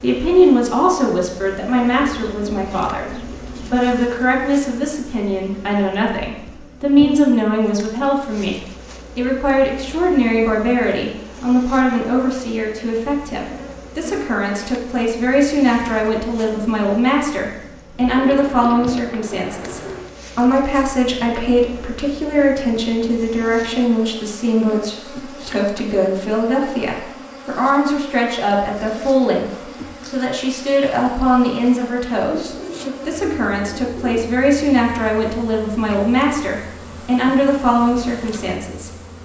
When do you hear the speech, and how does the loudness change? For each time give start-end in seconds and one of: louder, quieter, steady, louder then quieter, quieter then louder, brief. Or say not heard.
0.0-38.9 steady.